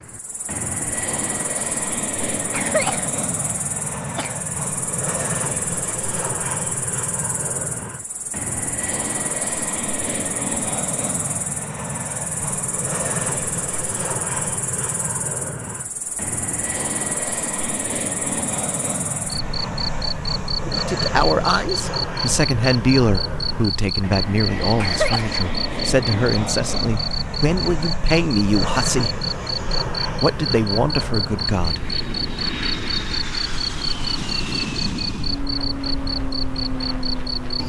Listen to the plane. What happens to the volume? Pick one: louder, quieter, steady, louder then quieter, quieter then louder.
steady.